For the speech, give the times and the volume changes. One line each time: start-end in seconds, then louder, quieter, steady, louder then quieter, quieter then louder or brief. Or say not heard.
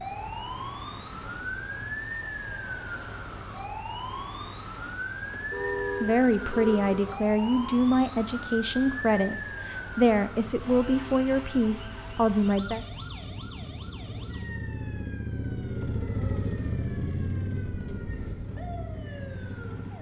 6.0-12.8 steady.